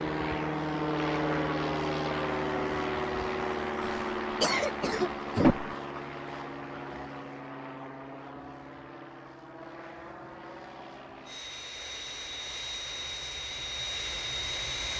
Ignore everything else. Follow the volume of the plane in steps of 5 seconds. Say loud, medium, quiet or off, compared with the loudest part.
loud, medium, medium.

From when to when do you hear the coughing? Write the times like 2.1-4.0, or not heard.
3.8-5.8.